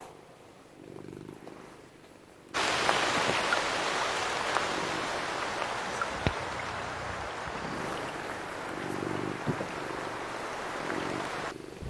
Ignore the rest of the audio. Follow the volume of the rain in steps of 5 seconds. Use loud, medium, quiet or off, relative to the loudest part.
loud, medium, medium.